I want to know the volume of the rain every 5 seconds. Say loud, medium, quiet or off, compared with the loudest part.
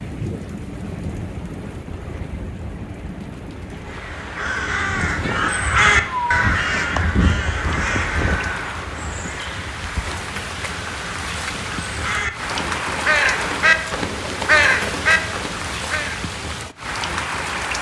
medium, medium, loud, loud.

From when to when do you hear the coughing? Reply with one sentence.
The coughing can't be heard in this clip.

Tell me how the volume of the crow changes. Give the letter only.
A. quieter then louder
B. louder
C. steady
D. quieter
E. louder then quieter
A.